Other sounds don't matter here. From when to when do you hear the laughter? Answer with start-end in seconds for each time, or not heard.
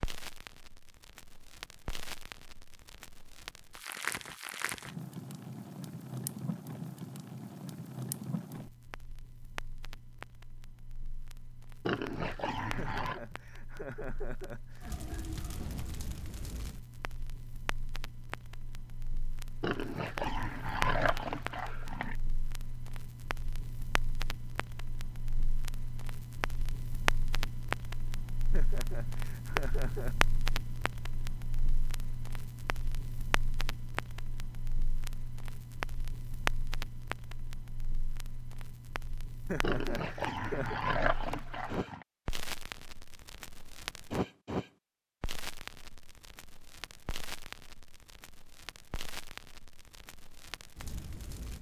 12.8-15.4, 28.5-30.1, 39.5-40.8.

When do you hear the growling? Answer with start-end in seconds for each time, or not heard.
11.8-13.2, 19.6-22.1, 39.6-42.0.